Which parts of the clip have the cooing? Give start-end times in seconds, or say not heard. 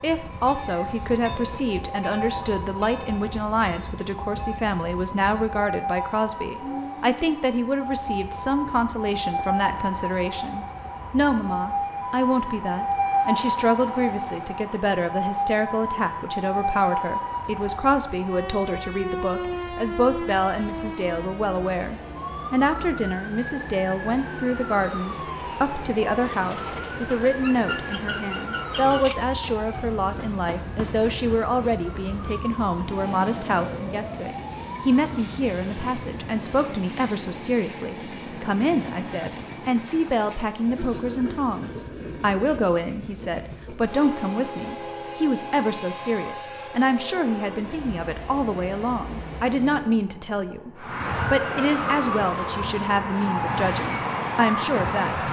26.2-29.1.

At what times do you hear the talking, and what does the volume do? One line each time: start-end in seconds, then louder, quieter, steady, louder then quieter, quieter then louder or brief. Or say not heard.
0.0-55.2 steady.